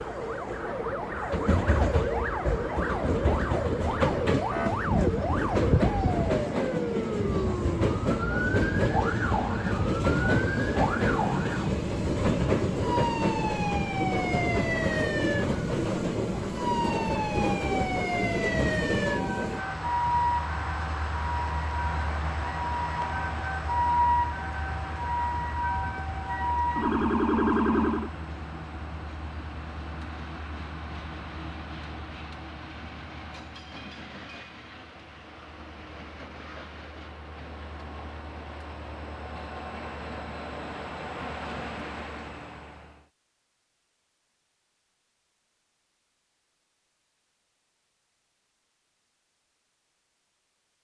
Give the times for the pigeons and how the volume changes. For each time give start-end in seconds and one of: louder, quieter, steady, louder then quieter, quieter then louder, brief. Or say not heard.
not heard.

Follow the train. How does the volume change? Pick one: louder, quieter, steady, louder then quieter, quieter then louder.
quieter.